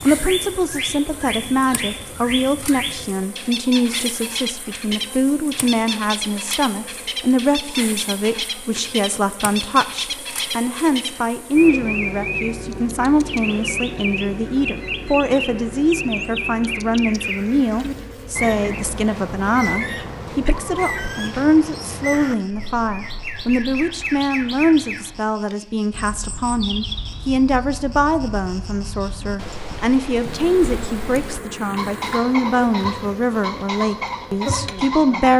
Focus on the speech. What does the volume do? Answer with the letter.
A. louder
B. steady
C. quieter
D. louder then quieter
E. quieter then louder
B.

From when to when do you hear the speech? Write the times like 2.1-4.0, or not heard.
0.1-35.3.